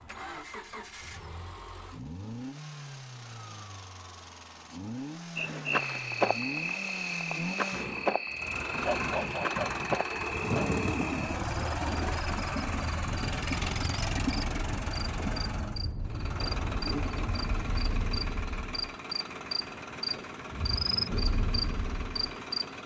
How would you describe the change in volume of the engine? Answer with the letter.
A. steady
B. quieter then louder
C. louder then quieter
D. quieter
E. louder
C.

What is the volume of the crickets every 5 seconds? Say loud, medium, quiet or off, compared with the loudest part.
off, loud, medium, medium, loud.